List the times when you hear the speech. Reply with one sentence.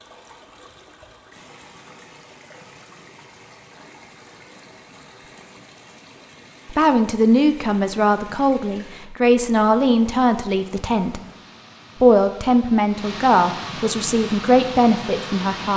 You can hear the speech from 6.7 to 11.2 s and from 12.0 to 15.7 s.